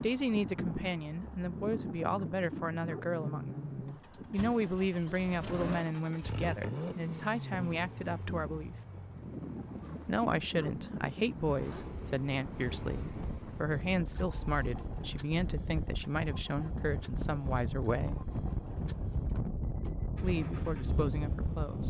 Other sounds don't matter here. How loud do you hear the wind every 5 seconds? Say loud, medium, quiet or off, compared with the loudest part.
medium, medium, medium, loud, loud.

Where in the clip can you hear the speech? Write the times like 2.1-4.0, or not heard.
0.0-8.8, 10.1-18.3, 20.2-21.8.